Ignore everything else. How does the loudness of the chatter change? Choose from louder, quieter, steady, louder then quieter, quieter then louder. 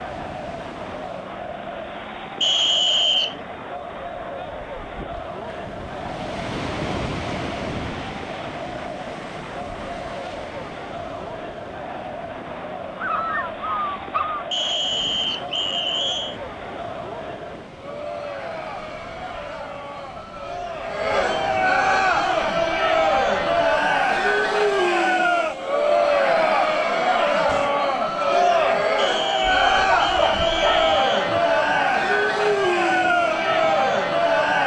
louder.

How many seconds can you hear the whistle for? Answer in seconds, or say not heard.
5 s.